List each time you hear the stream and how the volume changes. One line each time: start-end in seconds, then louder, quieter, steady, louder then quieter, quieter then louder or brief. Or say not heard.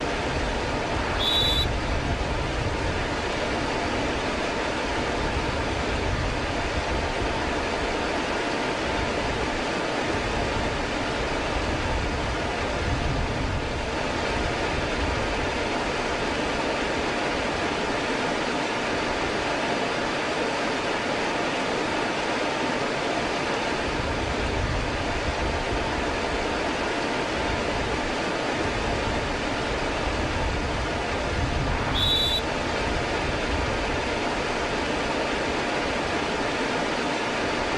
0.0-37.7 steady.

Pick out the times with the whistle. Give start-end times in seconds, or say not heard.
0.9-1.6, 31.6-32.4.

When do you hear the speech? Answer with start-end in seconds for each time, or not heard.
not heard.